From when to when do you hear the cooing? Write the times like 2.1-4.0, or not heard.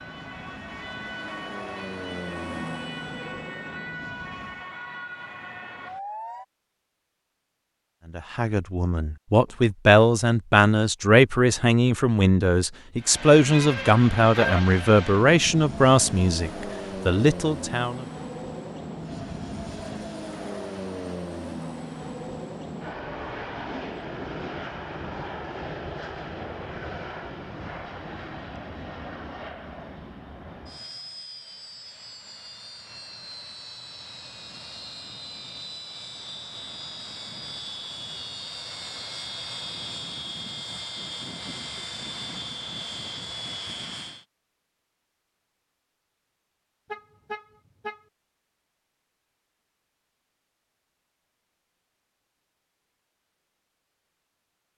not heard.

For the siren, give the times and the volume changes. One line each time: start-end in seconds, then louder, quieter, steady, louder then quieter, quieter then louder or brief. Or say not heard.
0.0-6.5 steady.